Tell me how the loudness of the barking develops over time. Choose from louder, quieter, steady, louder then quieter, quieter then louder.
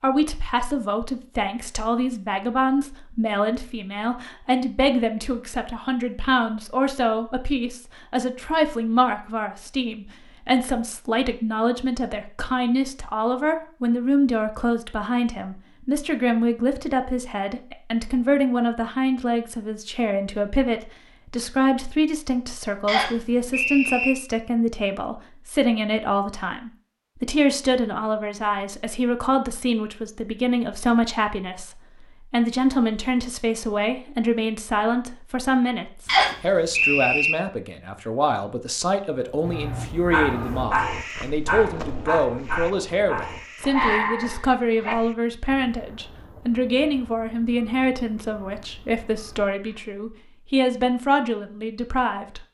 quieter then louder.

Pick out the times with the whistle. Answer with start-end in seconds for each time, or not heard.
22.9-24.1, 36.0-37.4.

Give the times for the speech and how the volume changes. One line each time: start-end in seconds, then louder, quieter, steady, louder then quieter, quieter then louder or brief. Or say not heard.
0.0-52.4 steady.